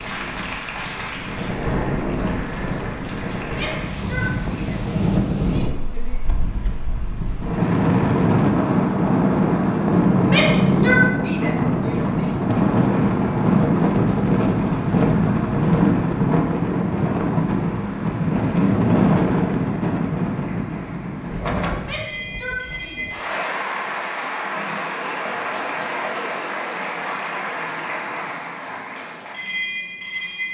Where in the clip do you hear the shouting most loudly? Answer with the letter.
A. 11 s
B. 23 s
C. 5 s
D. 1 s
A.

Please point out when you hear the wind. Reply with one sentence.
You can hear the wind from 0.0 to 23.1 s.